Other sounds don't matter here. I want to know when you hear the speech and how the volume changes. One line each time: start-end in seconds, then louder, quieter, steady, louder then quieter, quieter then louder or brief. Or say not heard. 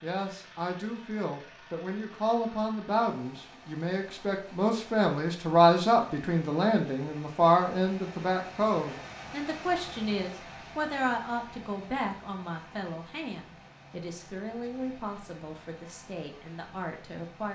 0.0-17.5 louder then quieter.